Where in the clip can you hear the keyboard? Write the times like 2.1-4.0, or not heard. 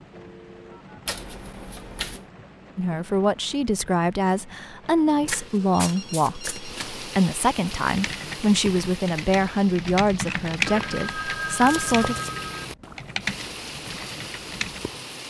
7.8-14.8.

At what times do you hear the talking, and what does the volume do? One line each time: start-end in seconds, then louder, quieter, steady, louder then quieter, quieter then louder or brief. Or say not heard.
2.8-12.2 steady.